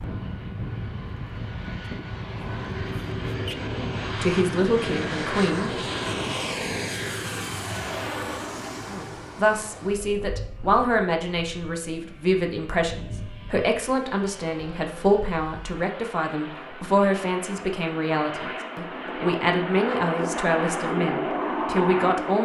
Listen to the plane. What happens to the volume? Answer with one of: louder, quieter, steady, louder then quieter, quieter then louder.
quieter then louder.